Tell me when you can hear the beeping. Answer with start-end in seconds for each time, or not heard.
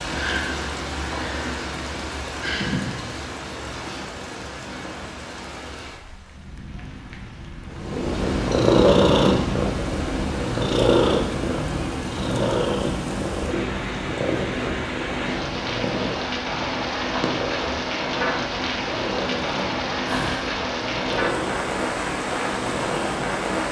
not heard.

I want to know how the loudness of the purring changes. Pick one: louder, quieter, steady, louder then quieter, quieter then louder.
quieter.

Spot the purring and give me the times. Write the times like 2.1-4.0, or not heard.
7.7-23.6.